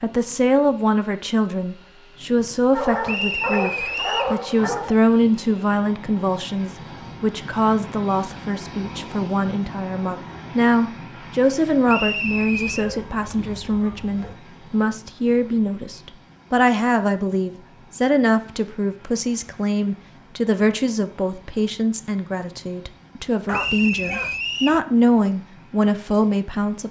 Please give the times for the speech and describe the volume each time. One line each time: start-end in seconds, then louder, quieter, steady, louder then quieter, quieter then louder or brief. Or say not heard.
0.0-26.8 steady.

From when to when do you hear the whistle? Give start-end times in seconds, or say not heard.
3.0-4.3, 11.8-12.8, 23.5-24.8.